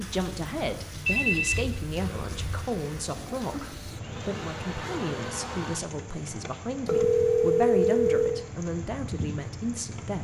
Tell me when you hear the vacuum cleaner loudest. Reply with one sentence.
The volume of the vacuum cleaner peaks at 5 seconds.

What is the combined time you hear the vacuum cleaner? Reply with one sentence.
You can hear the vacuum cleaner for 4 seconds altogether.